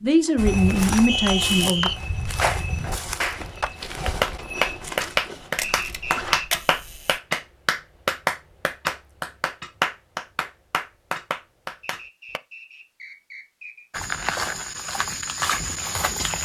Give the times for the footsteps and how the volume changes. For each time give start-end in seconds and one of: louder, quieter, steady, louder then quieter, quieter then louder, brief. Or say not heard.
0.3-6.4 quieter
13.9-16.4 brief.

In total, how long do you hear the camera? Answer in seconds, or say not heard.
2 s.